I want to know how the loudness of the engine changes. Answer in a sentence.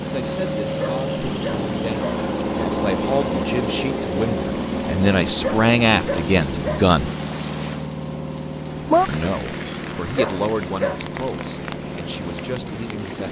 The loudness of the engine goes down.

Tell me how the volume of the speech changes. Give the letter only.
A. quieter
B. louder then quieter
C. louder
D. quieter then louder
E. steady
B.